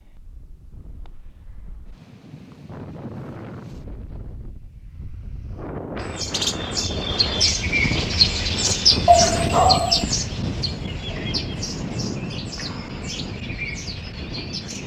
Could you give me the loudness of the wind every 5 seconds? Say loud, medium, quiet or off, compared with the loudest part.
medium, loud, loud.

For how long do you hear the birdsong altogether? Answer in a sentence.
You can hear the birdsong for 9 seconds altogether.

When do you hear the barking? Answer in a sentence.
You can hear the barking from 9.1 to 10.1 s.